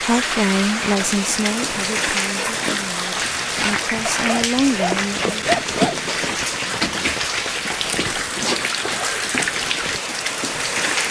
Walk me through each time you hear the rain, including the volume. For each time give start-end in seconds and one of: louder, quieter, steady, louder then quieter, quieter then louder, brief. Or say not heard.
0.0-11.0 steady.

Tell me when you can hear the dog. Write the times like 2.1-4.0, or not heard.
4.0-6.0.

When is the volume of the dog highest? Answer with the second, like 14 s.
6 s.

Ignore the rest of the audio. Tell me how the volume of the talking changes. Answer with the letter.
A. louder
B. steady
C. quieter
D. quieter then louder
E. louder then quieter
D.